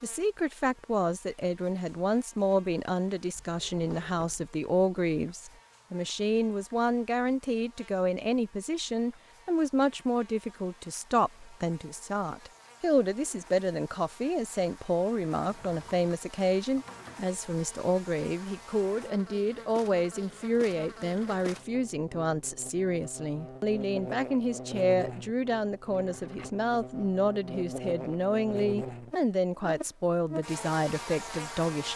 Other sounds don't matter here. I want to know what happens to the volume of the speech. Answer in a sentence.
The volume of the speech stays about the same.